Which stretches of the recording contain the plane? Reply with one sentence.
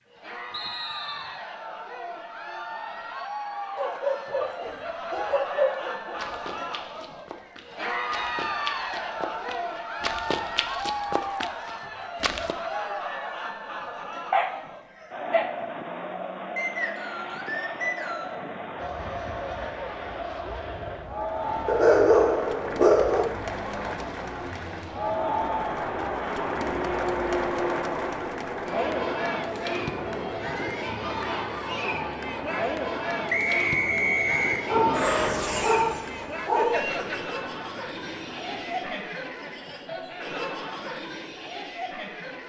The plane can be heard from 18.8 to 32.6 s and from 34.7 to 39.0 s.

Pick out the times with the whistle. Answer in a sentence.
The whistle can be heard from 0.5 to 1.4 s, from 16.6 to 18.4 s and from 33.2 to 34.6 s.